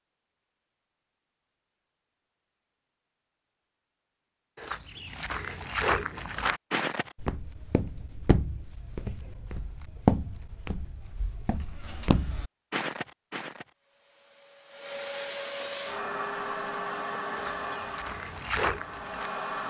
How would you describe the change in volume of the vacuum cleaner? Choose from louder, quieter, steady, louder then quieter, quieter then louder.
louder then quieter.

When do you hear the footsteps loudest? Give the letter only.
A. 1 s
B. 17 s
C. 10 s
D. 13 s
C.